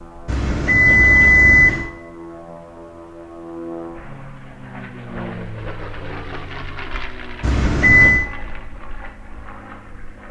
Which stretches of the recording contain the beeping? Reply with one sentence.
You can hear the beeping from 0.2 to 1.9 s and from 7.4 to 8.2 s.